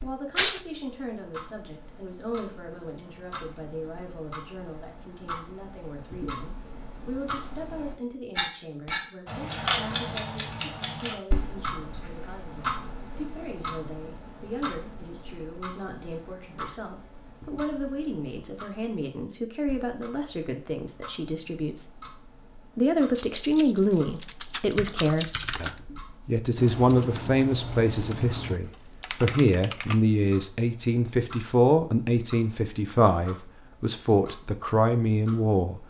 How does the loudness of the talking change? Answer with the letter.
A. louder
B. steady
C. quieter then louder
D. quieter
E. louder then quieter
A.